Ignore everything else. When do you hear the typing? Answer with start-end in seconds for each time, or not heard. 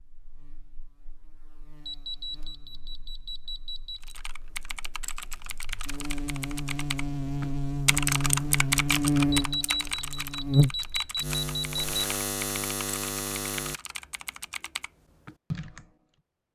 4.0-15.9.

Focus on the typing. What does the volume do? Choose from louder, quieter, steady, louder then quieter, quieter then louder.
louder then quieter.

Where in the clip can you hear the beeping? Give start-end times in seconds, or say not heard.
1.9-4.2, 9.3-12.0.